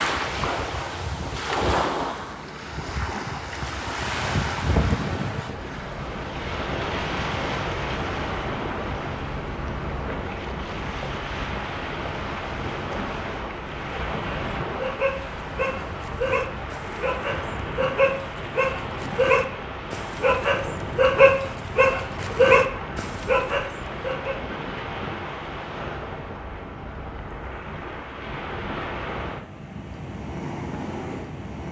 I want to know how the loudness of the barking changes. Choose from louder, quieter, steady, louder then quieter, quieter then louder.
louder.